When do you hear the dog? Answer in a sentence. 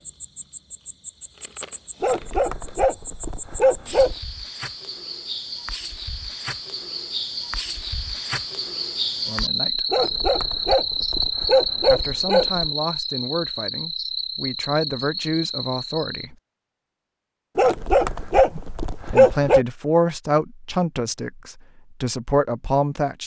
The dog can be heard from 2.0 to 4.2 s, from 9.9 to 12.7 s and from 17.6 to 19.6 s.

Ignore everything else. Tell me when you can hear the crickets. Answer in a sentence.
The crickets can be heard from 0.0 to 16.3 s.